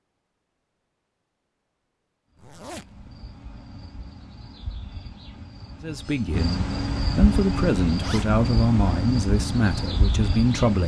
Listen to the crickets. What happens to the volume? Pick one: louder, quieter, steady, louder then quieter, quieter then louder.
louder.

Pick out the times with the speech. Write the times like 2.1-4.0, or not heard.
5.8-10.8.